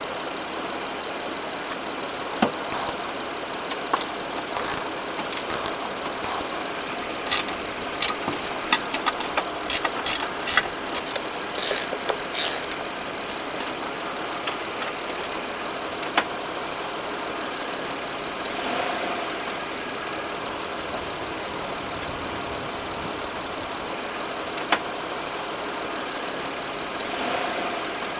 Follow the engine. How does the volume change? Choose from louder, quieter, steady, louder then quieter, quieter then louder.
steady.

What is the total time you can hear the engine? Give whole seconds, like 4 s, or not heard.
28 s.